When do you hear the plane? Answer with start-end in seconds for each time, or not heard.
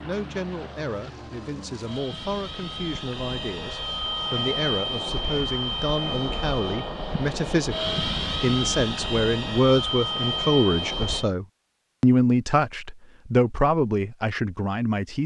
0.0-11.2.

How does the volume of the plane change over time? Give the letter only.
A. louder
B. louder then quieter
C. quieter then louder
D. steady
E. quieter
A.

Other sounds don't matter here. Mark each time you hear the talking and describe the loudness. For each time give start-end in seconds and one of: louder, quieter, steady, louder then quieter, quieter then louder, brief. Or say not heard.
0.0-15.2 louder.